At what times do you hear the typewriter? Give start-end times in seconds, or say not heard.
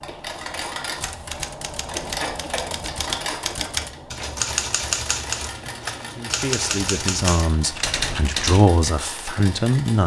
0.9-8.7.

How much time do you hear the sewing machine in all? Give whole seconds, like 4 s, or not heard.
10 s.